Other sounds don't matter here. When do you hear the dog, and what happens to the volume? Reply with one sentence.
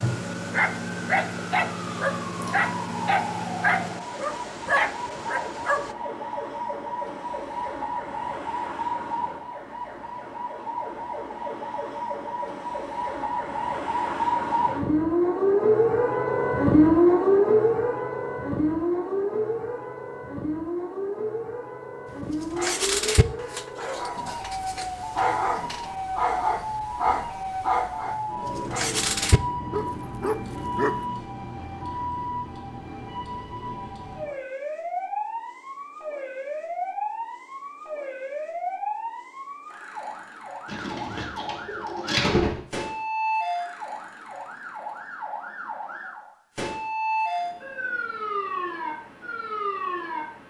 The dog can be heard from 0.0 to 6.0 s, at a steady volume; and from 22.3 to 31.1 s, at a steady volume.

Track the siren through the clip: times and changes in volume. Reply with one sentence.
The siren can be heard from 0.0 to 50.4 s, getting louder then quieter.